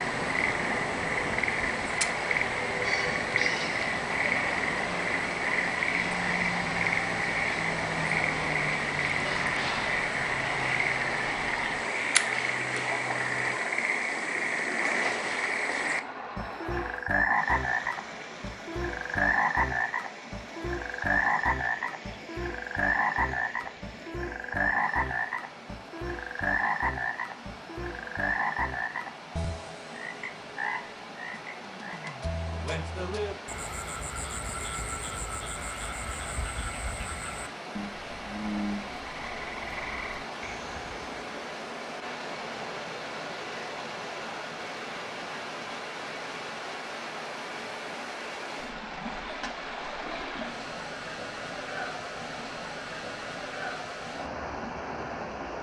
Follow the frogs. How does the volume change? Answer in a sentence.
The loudness of the frogs goes down.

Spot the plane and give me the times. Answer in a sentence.
The plane can be heard from 0.0 to 13.6 s.